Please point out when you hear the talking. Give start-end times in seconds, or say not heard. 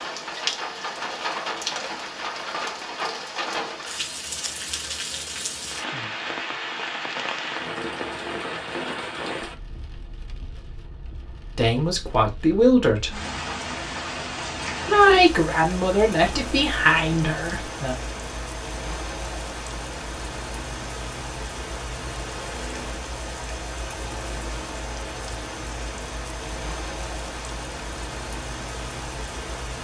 11.6-13.2, 14.8-17.9.